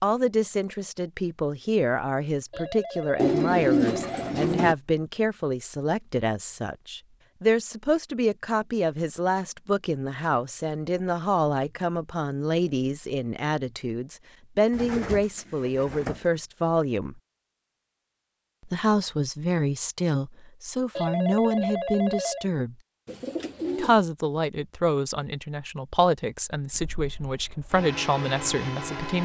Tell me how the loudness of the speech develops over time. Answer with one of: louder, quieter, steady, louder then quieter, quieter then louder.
steady.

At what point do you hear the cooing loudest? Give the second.
4 s.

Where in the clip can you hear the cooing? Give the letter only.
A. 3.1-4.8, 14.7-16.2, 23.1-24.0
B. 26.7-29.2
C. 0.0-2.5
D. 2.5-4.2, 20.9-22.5
A.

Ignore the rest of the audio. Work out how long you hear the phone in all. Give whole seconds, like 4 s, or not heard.
3 s.